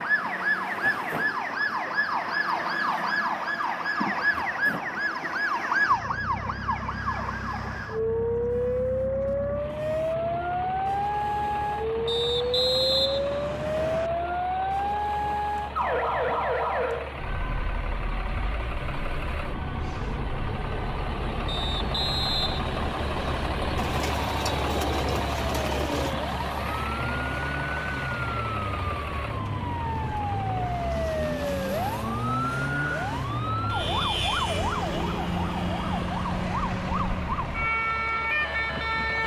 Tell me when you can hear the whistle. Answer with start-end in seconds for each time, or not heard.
12.1-14.1, 21.4-23.5.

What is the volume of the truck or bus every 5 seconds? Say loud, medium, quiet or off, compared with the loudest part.
medium, medium, medium, medium, loud, loud, medium, medium.